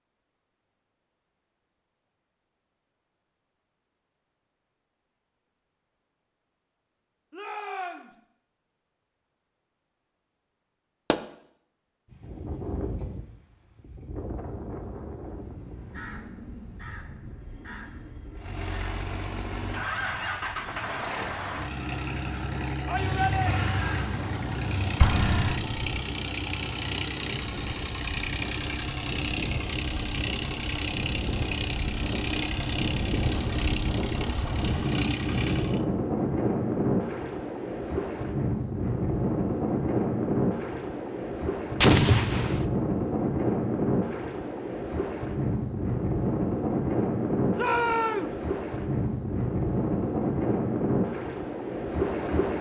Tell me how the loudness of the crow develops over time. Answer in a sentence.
The loudness of the crow goes up.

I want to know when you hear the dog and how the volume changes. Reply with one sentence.
The dog can't be heard in this clip.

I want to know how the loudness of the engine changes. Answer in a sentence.
The loudness of the engine stays about the same.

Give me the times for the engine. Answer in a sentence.
You can hear the engine from 18.4 to 35.9 s.